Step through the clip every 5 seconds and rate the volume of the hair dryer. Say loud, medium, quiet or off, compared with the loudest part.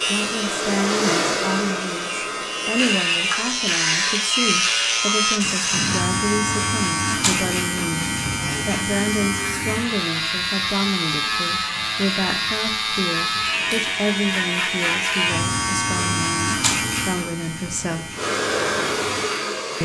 loud, off, off, loud.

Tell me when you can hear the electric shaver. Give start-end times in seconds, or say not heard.
0.0-19.8.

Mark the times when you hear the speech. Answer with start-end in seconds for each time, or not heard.
0.1-18.1.